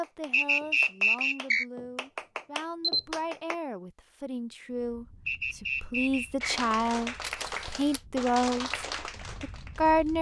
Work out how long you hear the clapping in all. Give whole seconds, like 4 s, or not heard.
7 s.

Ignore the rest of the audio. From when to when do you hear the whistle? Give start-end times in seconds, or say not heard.
0.3-1.6, 5.2-6.6.